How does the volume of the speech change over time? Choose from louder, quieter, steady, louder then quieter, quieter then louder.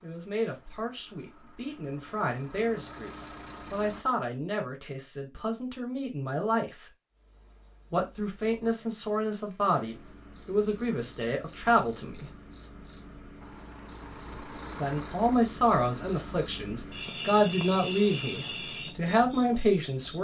louder.